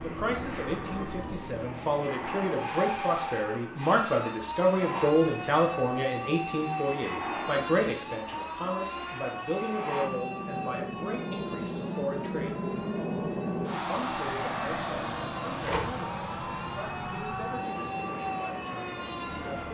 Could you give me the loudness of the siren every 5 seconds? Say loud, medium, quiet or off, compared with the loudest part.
loud, loud, medium, loud.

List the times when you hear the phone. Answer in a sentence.
You can hear the phone from 15.6 to 16.1 s.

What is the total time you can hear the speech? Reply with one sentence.
The speech can be heard for 18 seconds in total.